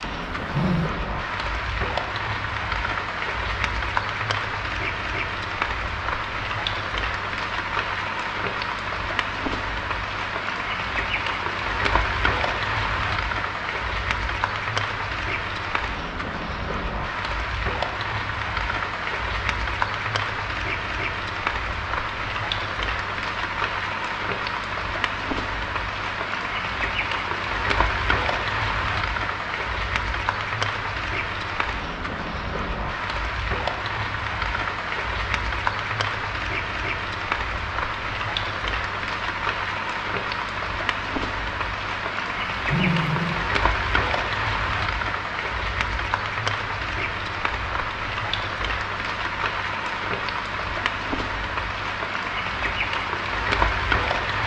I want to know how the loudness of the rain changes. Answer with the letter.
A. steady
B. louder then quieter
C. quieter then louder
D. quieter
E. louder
A.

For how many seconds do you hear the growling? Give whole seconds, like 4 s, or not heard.
2 s.